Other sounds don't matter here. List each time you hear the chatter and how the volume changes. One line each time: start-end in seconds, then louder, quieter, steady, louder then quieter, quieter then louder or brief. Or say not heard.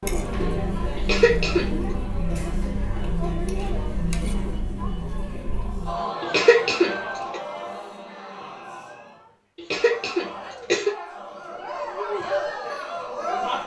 0.0-13.6 quieter then louder.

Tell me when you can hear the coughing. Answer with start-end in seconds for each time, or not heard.
0.9-1.7, 6.2-7.4, 9.6-10.9.